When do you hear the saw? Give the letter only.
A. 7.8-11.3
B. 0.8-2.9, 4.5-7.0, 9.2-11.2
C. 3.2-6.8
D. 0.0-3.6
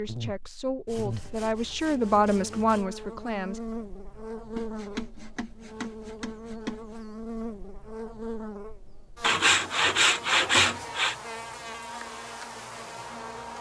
B.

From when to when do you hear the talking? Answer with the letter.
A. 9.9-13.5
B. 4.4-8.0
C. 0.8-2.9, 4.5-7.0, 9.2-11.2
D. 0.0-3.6
D.